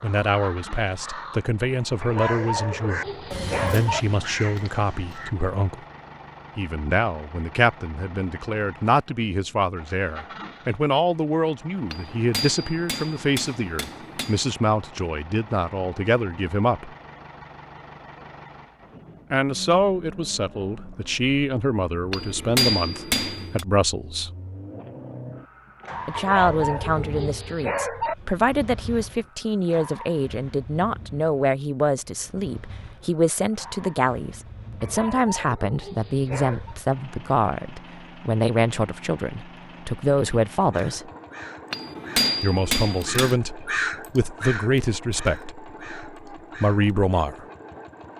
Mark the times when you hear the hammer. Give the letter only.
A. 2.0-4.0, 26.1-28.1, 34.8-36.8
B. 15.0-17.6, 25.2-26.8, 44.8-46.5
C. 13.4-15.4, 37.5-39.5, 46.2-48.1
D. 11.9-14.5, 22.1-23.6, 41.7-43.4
D.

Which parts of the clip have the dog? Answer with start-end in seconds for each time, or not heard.
2.0-4.0, 26.1-28.1, 34.8-36.8.